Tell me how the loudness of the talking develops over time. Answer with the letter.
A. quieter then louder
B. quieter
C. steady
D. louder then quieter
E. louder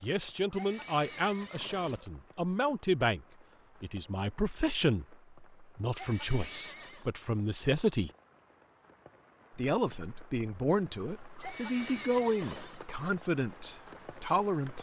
C.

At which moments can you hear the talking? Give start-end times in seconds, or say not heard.
0.0-8.1, 9.6-14.7.